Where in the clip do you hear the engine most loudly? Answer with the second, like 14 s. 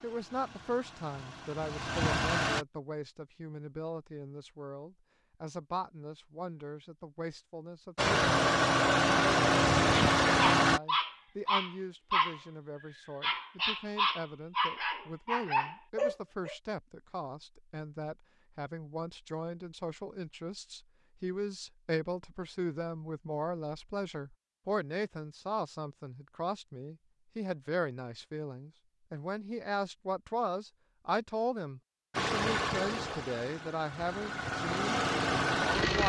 10 s.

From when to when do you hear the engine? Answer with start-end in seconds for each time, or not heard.
0.0-2.6, 8.0-10.8, 32.1-36.0.